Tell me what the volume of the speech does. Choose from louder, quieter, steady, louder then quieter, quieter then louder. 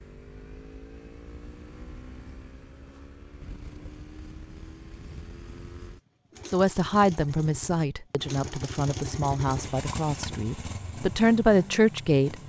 quieter then louder.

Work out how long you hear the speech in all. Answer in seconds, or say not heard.
6 s.